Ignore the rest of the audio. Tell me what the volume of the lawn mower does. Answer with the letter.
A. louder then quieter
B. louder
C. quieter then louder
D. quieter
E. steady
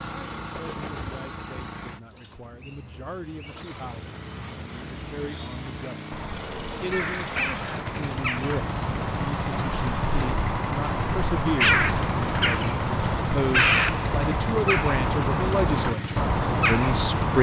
B.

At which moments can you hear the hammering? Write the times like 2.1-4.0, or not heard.
not heard.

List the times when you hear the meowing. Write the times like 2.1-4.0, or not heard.
not heard.